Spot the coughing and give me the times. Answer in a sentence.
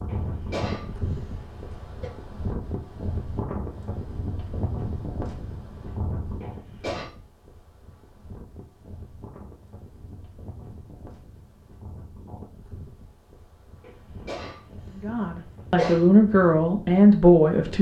The coughing can be heard from 0.1 to 2.1 s, from 6.4 to 7.1 s and from 13.8 to 16.1 s.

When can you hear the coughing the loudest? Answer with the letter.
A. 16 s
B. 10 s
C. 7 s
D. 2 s
A.